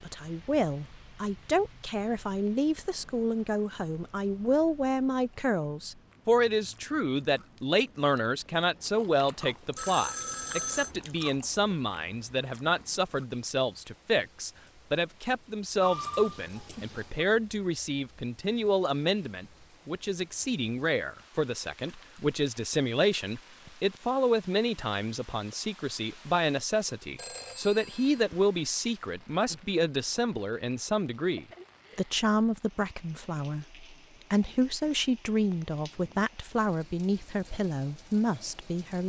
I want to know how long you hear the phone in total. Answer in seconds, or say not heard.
4 s.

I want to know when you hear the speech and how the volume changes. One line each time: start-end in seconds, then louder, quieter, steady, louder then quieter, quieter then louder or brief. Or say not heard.
0.0-39.0 steady.